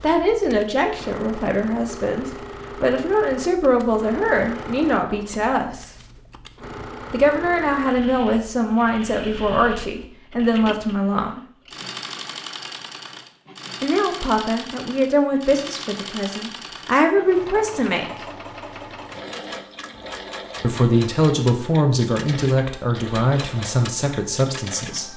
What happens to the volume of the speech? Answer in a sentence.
The volume of the speech stays about the same.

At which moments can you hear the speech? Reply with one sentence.
You can hear the speech from 0.0 to 5.9 s, from 7.1 to 11.4 s, from 13.8 to 18.1 s and from 20.6 to 25.1 s.